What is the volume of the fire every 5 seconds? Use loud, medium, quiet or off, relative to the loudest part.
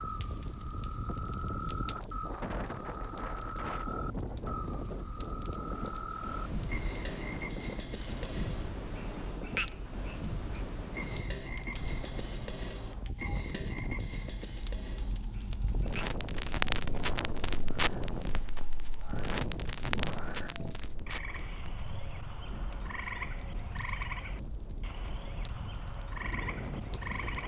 quiet, quiet, quiet, loud, medium, quiet.